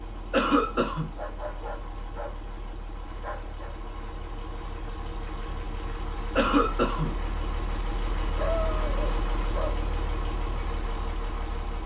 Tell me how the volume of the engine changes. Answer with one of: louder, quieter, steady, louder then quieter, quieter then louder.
louder.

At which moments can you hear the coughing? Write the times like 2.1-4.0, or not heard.
0.3-1.1, 6.3-7.2.